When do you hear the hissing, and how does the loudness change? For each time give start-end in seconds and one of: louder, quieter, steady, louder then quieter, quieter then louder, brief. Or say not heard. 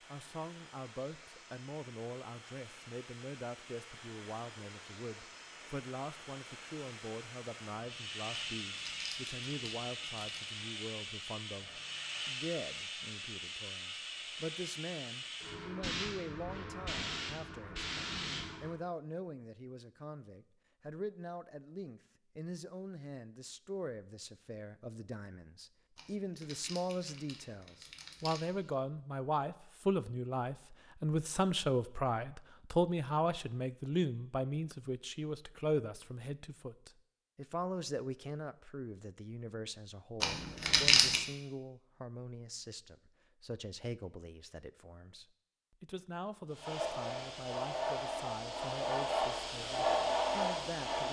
0.0-18.8 louder
46.5-51.0 louder.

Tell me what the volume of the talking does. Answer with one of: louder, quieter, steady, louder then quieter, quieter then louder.
louder then quieter.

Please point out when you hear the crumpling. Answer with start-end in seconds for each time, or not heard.
8.3-10.5, 25.9-28.8, 40.2-41.2.